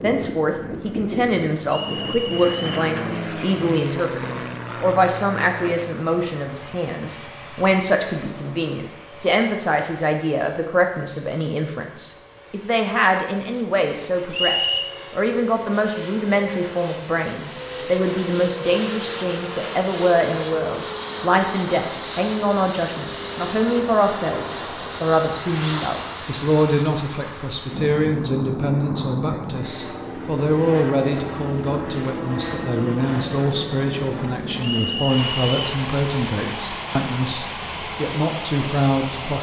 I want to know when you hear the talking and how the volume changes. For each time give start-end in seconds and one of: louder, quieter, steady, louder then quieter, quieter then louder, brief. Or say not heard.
0.0-39.3 steady.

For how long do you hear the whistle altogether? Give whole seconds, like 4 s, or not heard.
3 s.